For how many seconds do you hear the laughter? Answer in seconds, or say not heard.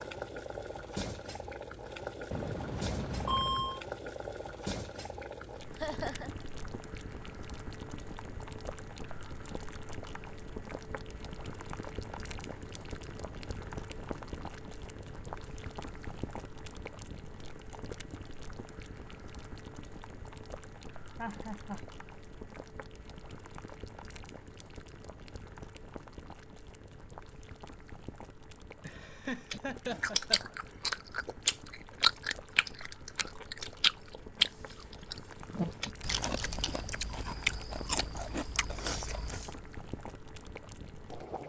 3 s.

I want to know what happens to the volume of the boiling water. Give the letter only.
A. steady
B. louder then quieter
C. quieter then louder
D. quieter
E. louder
D.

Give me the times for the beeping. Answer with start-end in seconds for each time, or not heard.
2.3-3.8.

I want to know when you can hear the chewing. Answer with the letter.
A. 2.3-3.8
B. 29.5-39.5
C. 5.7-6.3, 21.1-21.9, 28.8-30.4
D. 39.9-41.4
B.